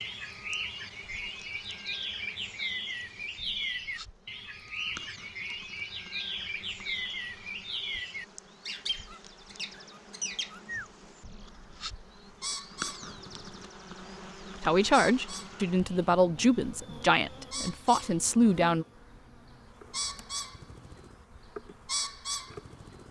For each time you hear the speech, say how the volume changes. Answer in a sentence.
You can hear the speech from 14.6 to 18.9 s, at a steady volume.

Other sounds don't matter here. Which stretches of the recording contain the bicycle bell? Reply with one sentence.
The bicycle bell can't be heard in this clip.